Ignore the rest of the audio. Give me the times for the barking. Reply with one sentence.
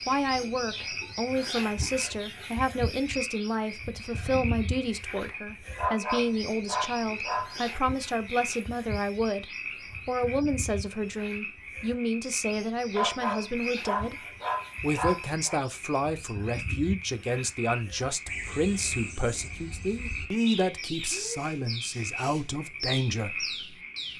The barking can be heard from 5.8 to 7.5 s and from 12.9 to 15.6 s.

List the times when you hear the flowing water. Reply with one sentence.
You can't hear the flowing water here.